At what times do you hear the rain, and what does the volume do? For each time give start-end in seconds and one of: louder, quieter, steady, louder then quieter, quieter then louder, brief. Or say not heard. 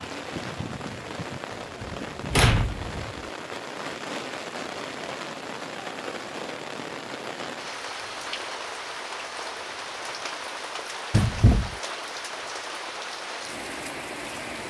0.0-14.6 steady.